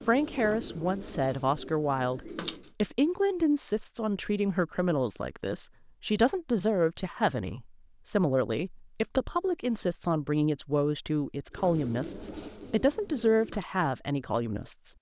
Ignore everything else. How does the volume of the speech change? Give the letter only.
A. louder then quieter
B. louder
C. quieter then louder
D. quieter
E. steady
E.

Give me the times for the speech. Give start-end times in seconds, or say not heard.
0.1-14.9.